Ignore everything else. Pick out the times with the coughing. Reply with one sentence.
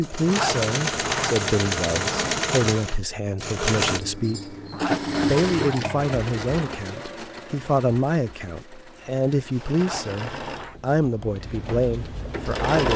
You can't hear the coughing here.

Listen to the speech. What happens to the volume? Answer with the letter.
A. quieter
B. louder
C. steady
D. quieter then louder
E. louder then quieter
C.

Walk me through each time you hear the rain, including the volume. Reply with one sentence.
The rain can't be heard in this clip.